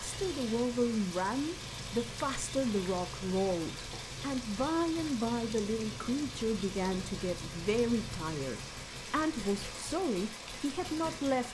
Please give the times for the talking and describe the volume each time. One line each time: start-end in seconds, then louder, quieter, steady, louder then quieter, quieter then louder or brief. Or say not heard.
0.0-11.4 steady.